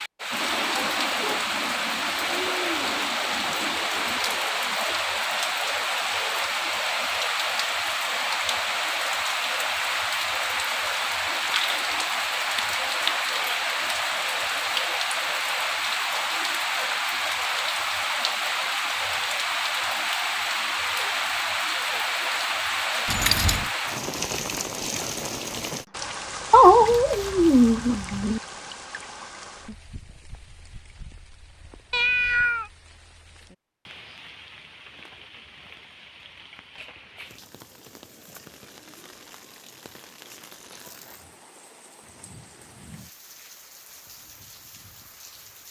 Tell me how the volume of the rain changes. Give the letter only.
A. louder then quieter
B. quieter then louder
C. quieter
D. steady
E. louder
C.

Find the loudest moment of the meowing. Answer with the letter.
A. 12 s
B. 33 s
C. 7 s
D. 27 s
D.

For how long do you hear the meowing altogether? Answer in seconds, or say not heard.
5 s.